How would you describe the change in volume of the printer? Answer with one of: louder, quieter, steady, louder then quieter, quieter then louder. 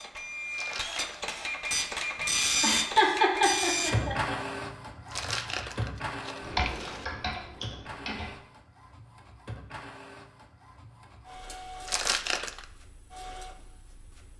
quieter.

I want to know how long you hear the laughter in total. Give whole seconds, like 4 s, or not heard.
2 s.